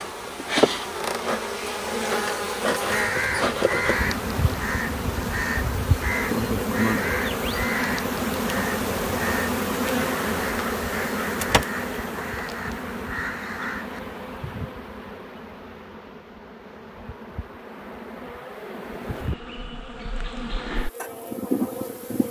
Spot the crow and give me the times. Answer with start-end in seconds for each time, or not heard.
2.9-14.8.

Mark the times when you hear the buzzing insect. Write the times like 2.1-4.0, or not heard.
0.0-22.2.